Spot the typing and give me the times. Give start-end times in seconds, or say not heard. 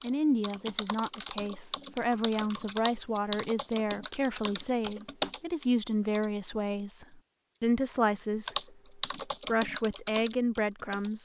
0.0-6.2, 8.4-11.1.